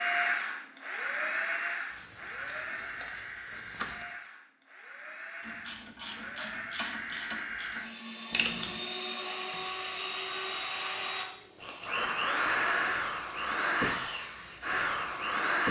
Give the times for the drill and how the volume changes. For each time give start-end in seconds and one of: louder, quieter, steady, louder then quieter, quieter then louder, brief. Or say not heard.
0.0-15.6 quieter then louder.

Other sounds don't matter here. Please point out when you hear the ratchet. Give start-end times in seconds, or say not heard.
5.4-8.8.